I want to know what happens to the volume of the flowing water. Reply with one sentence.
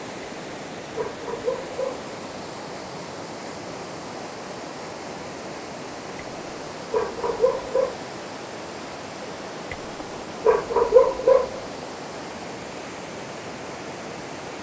The volume of the flowing water stays about the same.